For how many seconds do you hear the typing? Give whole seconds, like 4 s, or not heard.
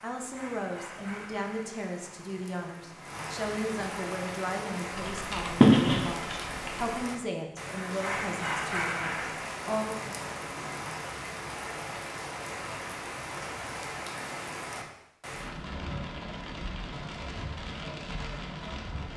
2 s.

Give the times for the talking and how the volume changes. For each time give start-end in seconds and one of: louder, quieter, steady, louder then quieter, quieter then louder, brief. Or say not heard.
0.0-9.9 steady.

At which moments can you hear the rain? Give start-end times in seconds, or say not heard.
0.0-19.1.